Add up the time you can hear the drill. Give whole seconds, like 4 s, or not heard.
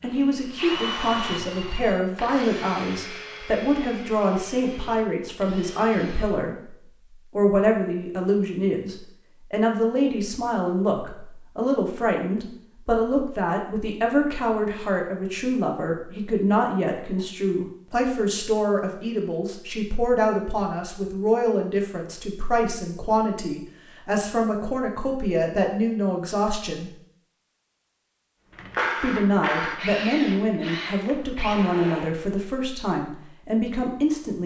10 s.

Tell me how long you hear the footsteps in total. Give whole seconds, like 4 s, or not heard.
not heard.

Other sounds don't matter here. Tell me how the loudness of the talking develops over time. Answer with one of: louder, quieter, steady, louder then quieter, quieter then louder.
steady.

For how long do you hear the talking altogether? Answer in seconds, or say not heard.
32 s.